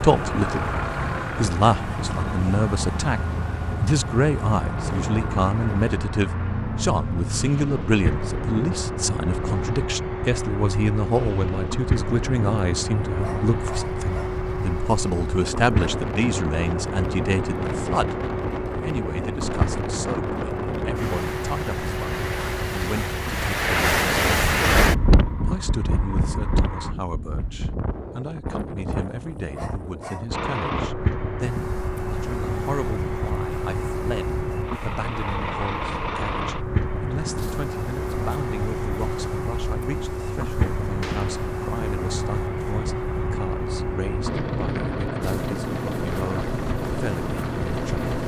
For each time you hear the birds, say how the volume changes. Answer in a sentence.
You can't hear the birds here.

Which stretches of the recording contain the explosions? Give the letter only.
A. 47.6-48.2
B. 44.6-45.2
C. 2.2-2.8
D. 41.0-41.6
D.